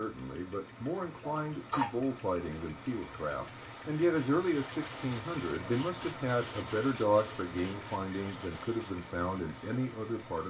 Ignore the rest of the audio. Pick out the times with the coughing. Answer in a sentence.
The coughing can be heard from 1.2 to 1.9 s.